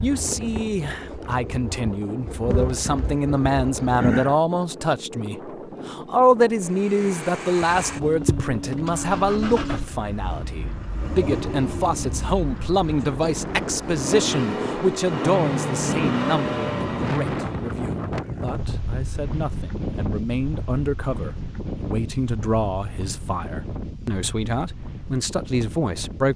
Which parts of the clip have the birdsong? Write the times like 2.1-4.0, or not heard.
not heard.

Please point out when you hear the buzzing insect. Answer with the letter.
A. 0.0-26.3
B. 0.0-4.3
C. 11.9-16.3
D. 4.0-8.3
B.